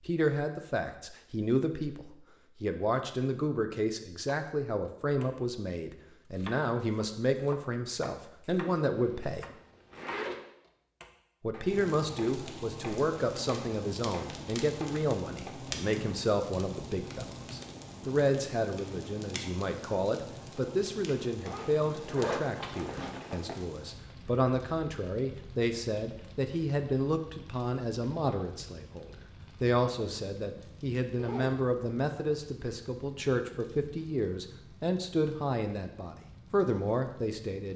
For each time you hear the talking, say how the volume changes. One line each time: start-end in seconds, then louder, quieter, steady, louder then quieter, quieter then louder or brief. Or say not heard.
0.1-9.4 steady
11.4-37.7 steady.